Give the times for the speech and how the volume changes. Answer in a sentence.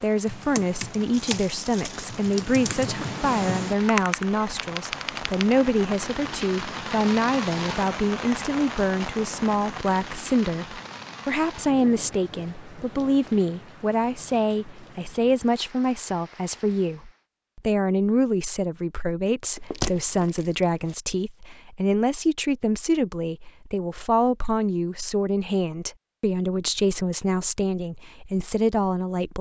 You can hear the speech from 0.0 to 29.3 s, at a steady volume.